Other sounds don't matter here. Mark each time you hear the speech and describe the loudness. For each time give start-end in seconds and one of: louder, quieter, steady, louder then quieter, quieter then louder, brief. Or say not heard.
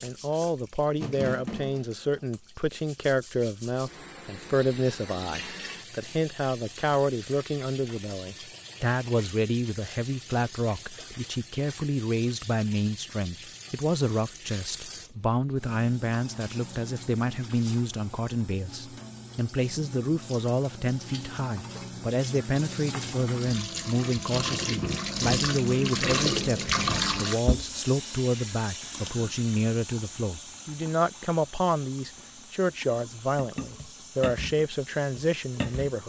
0.0-36.0 steady.